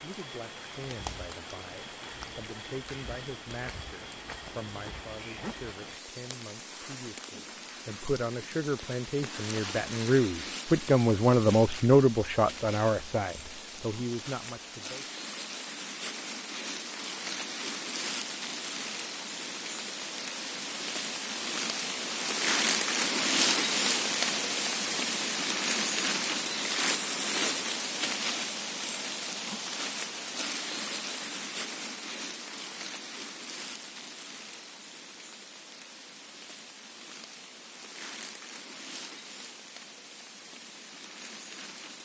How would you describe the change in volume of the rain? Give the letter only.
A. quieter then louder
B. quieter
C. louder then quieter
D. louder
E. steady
C.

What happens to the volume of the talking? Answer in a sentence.
The volume of the talking goes up.